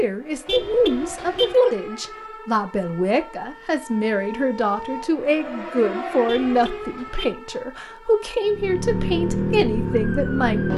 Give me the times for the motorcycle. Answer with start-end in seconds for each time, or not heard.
8.4-10.7.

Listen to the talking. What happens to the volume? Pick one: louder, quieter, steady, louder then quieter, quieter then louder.
steady.